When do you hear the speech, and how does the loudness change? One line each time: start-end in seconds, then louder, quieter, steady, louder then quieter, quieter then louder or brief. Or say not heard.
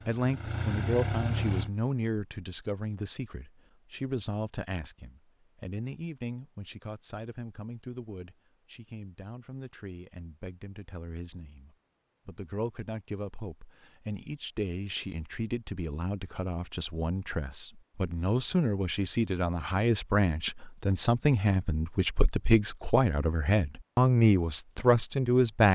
0.1-25.7 quieter then louder.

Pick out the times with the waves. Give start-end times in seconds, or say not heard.
not heard.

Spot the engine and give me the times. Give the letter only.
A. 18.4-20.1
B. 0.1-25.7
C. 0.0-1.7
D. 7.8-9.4
C.